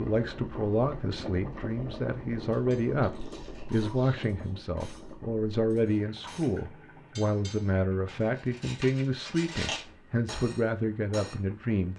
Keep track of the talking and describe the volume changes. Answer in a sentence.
The volume of the talking stays about the same.